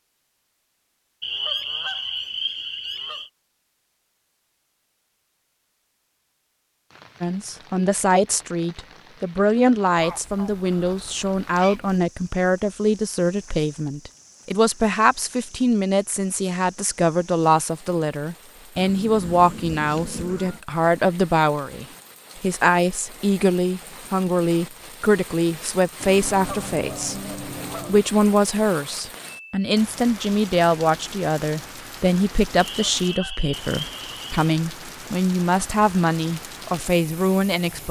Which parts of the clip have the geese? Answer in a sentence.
You can hear the geese from 1.2 to 3.3 s, from 9.9 to 12.0 s, from 18.8 to 20.6 s, from 26.0 to 28.0 s and from 32.5 to 34.4 s.